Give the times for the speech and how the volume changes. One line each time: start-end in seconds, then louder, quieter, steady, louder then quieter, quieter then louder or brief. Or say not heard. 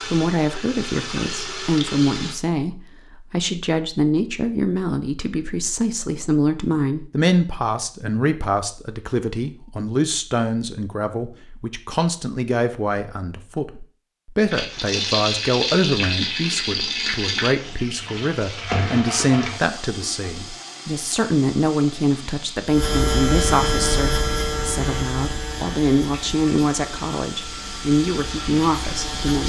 0.1-29.4 steady.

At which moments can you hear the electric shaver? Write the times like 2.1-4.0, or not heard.
22.6-29.4.